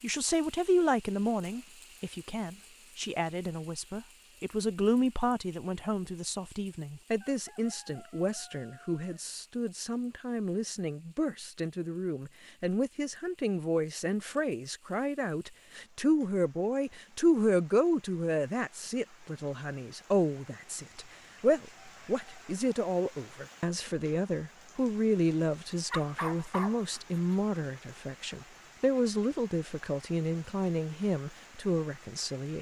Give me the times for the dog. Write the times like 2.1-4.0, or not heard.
25.9-27.2.